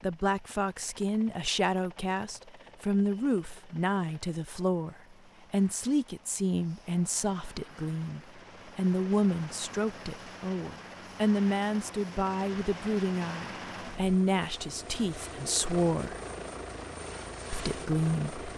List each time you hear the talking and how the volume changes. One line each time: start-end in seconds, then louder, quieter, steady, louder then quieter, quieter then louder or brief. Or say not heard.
0.0-16.2 steady
17.5-18.4 brief.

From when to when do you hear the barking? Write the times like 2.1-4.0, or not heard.
not heard.